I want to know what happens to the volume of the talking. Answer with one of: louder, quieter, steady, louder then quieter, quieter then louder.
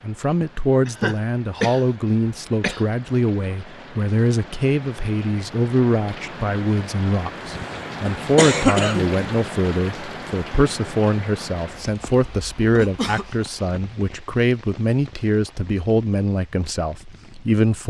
steady.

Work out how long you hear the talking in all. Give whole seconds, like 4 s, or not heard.
18 s.